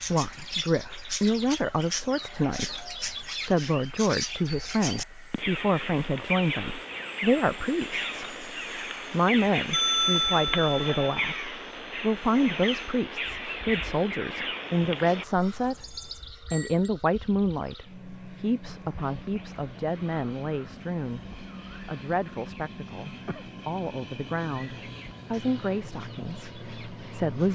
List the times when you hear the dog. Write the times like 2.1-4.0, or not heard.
not heard.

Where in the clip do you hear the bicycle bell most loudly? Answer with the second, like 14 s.
10 s.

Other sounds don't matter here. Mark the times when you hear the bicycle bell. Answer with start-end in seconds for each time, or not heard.
9.7-11.1, 15.8-16.9.